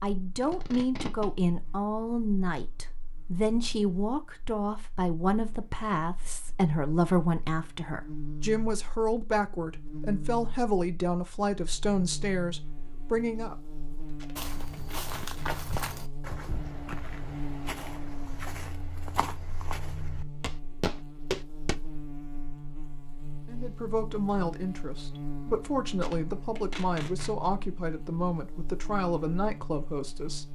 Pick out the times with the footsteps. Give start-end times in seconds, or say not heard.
14.3-21.8.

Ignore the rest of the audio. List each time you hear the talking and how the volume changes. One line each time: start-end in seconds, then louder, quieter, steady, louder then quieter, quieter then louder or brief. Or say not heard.
0.0-13.6 steady
23.4-30.5 steady.